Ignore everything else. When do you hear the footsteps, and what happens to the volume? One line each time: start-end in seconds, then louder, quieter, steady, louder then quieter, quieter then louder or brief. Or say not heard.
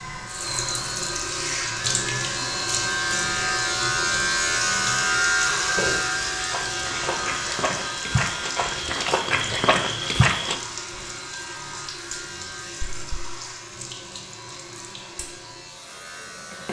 5.7-11.1 louder.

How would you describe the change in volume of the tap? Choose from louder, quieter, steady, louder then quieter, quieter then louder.
quieter.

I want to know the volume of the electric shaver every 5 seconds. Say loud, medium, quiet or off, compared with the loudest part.
loud, loud, quiet, quiet.